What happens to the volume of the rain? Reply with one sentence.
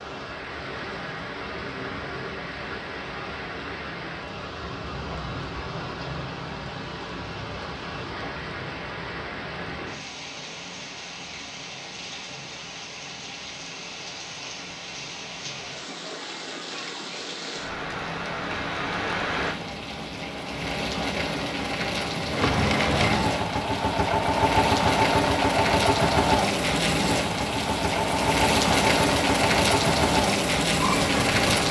The loudness of the rain goes up.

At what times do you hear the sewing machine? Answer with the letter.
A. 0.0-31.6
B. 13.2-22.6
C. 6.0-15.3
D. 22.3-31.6
D.